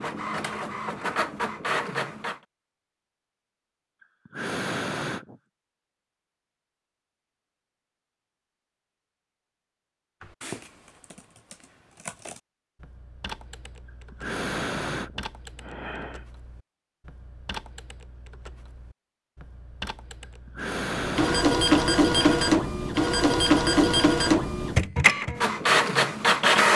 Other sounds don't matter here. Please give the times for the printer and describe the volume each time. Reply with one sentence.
You can hear the printer briefly from 0.0 to 2.4 s; and from 20.9 to 26.7 s, at a steady volume.